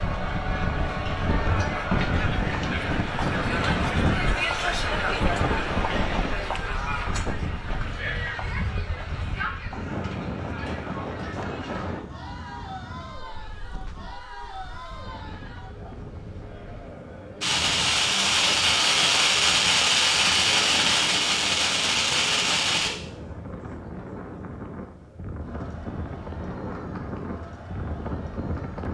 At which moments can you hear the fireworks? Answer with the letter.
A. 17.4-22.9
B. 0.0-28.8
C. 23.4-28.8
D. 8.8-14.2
A.